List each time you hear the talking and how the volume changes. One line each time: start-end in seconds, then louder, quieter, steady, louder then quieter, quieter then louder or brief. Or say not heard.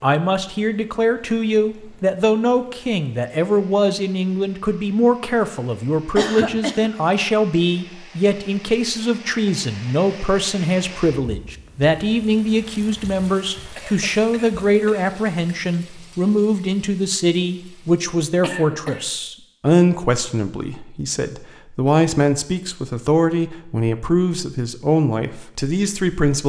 0.0-26.4 steady.